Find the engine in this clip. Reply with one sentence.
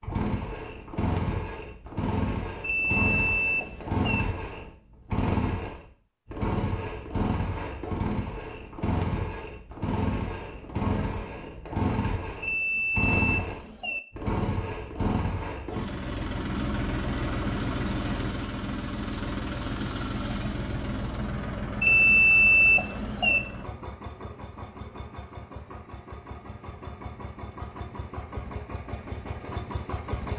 You can hear the engine from 0.0 to 30.3 s.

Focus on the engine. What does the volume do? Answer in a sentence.
The volume of the engine goes down.